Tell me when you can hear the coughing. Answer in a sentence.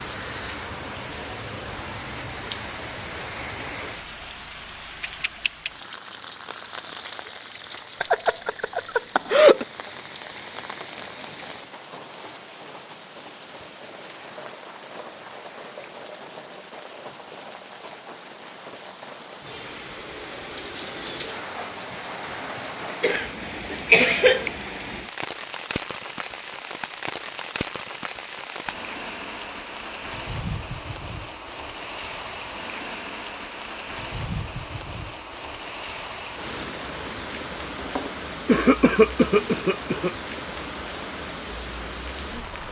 You can hear the coughing from 8.0 to 9.7 s, from 23.0 to 24.5 s and from 37.9 to 40.1 s.